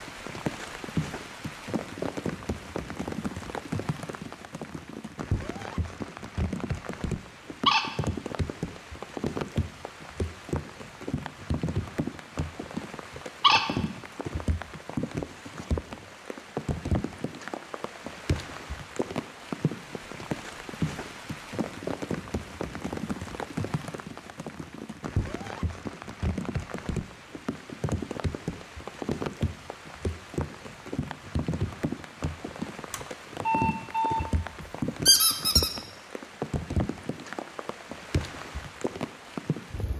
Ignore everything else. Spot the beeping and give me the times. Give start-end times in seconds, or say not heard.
32.9-34.3.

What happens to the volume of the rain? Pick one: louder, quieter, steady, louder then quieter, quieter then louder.
steady.